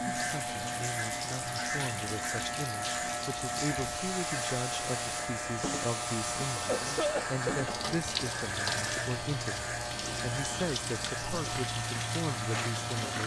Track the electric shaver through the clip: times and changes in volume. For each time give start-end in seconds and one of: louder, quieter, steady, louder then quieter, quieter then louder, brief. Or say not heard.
0.0-13.2 steady.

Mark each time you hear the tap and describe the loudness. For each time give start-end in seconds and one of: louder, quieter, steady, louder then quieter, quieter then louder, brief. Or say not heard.
0.0-13.2 steady.